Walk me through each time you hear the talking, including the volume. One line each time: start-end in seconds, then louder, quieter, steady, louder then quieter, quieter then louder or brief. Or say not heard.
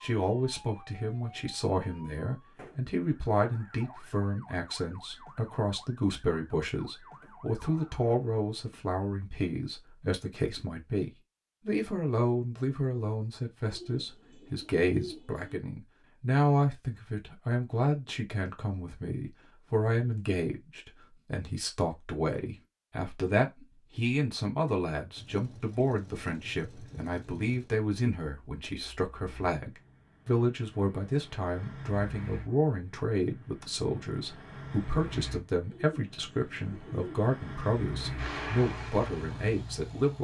0.0-40.1 steady.